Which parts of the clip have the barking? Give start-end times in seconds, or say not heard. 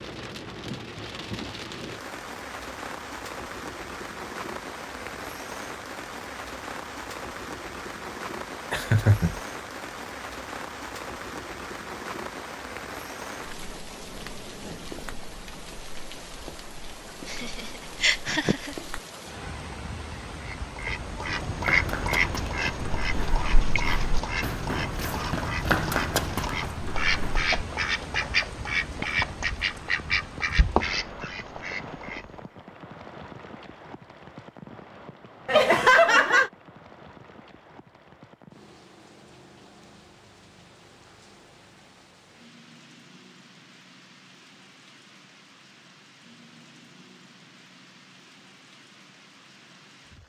not heard.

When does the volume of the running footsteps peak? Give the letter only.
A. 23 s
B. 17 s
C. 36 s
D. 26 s
D.